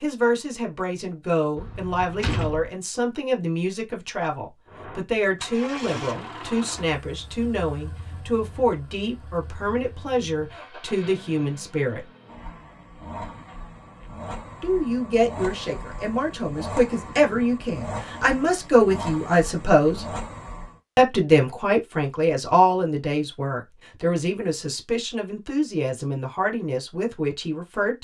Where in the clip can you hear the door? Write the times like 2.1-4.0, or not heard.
1.6-2.7.